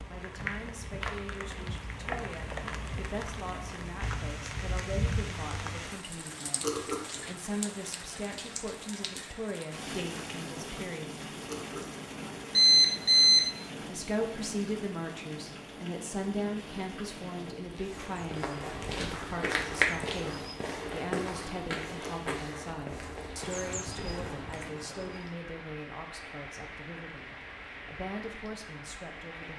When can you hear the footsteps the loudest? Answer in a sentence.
The volume of the footsteps peaks at 20 seconds.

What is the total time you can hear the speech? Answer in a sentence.
You can hear the speech for 27 seconds altogether.